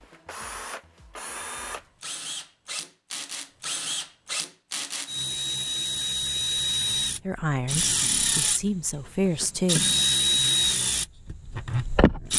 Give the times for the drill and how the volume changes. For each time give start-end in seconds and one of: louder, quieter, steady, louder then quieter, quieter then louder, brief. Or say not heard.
0.0-12.3 louder.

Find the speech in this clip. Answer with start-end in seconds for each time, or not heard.
7.2-9.8.